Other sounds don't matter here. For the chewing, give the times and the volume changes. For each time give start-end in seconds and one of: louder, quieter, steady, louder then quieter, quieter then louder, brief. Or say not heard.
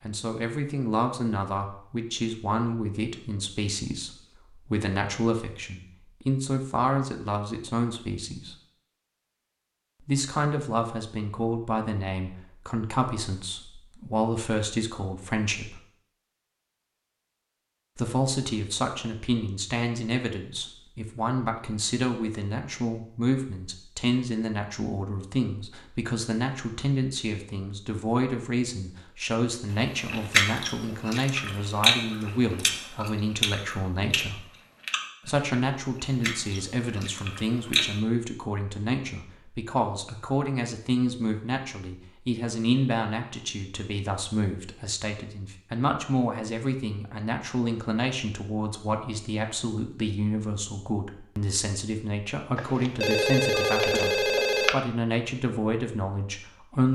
30.1-37.9 louder then quieter.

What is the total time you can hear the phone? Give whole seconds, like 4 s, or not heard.
2 s.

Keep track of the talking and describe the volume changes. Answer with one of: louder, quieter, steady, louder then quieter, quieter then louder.
steady.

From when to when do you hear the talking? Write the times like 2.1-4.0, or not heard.
0.0-8.6, 10.1-15.8, 17.9-34.5, 35.2-56.8.